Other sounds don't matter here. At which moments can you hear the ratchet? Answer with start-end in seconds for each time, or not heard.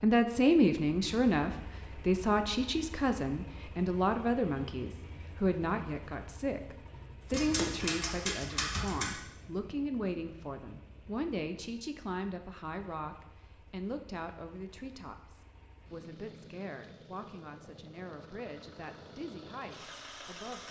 7.3-9.2.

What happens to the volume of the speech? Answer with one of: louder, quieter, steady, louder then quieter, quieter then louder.
quieter.